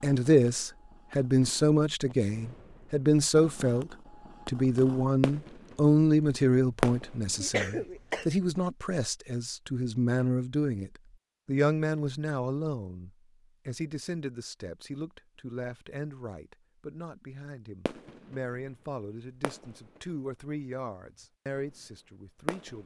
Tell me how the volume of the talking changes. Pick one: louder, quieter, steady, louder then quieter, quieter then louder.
quieter.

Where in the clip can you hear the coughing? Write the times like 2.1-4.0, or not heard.
7.4-8.2.